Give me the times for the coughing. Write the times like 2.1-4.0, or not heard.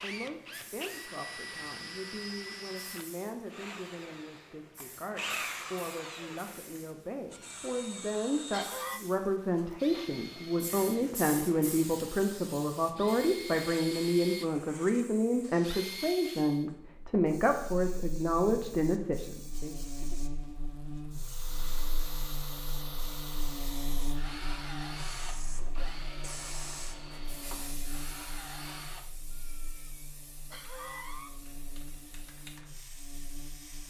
7.3-9.0, 29.3-31.3.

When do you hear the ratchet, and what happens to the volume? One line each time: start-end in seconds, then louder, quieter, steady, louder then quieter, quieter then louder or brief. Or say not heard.
not heard.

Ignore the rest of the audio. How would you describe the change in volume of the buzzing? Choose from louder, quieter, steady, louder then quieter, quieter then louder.
quieter.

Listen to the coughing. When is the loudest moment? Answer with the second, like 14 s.
9 s.